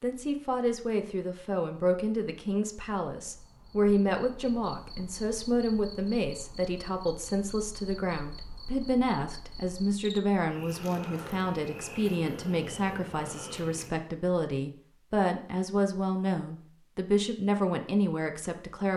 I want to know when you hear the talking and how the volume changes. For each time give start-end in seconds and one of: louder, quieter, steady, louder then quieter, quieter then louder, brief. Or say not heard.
0.0-18.9 steady.